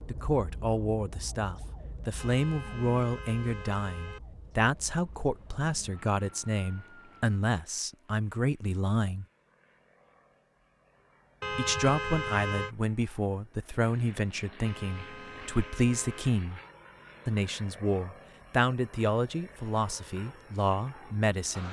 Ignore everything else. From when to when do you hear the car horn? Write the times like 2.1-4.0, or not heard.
2.1-4.2, 11.4-12.8, 14.7-16.4.